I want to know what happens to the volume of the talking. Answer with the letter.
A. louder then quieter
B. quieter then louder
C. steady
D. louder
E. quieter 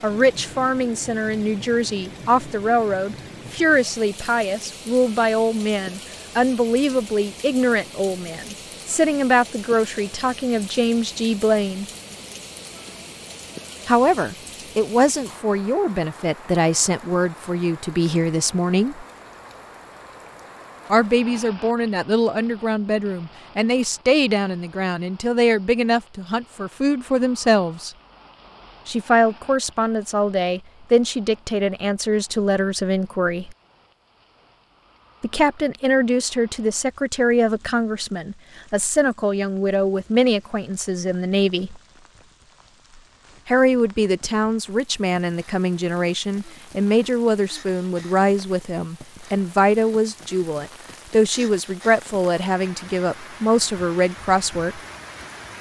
C.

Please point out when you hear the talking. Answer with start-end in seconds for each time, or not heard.
0.0-11.8, 13.8-19.1, 20.9-27.9, 28.9-33.5, 35.2-41.8, 43.5-54.8.